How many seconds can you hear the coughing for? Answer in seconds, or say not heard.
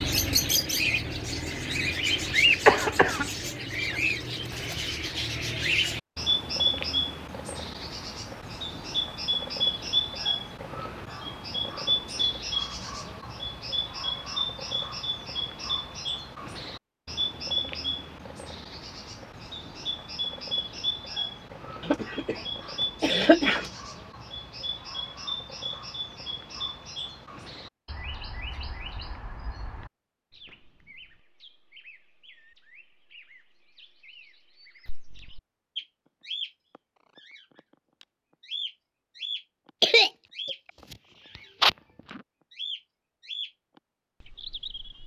5 s.